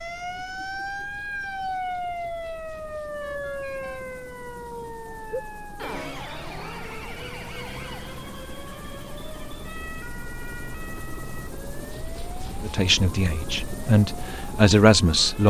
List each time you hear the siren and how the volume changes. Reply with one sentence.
You can hear the siren from 0.0 to 15.4 s, getting quieter.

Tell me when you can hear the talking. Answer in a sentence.
You can hear the talking from 12.6 to 15.4 s.